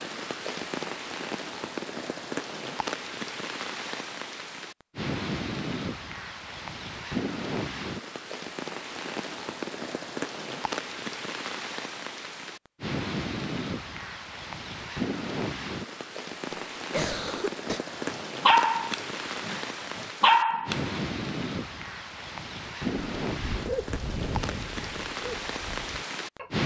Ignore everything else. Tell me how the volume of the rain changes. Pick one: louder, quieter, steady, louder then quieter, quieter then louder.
steady.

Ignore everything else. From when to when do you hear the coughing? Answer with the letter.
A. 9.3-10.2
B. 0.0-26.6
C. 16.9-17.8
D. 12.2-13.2
C.